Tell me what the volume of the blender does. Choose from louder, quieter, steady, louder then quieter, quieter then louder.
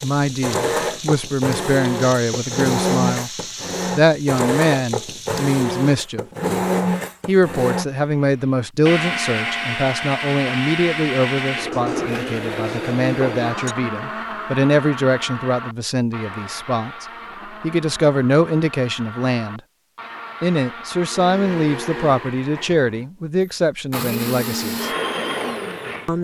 quieter then louder.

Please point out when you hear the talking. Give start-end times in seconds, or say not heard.
0.0-6.2, 7.2-19.6, 20.4-24.9.